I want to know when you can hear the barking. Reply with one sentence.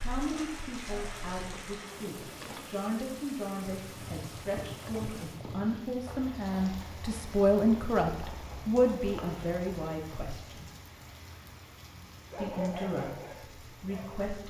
You can hear the barking from 0.0 to 1.7 s and from 12.3 to 14.2 s.